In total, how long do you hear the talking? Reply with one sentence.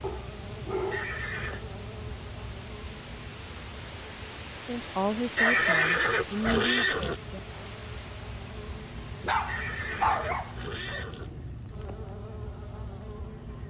You can hear the talking for 3 seconds altogether.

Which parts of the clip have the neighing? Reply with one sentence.
You can hear the neighing from 0.9 to 1.6 s, from 5.3 to 7.2 s and from 9.4 to 11.3 s.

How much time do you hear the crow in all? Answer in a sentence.
The crow can't be heard in this clip.